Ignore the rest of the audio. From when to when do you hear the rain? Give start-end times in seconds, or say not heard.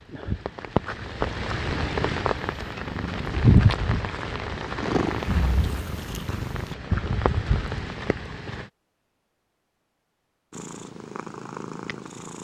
0.0-8.7.